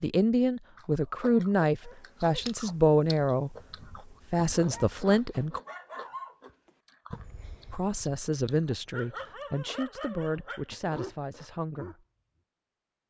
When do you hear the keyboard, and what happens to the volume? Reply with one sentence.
You can't hear the keyboard here.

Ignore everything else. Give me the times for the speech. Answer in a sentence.
The speech can be heard from 0.0 to 3.5 s, from 4.3 to 5.6 s and from 7.7 to 12.0 s.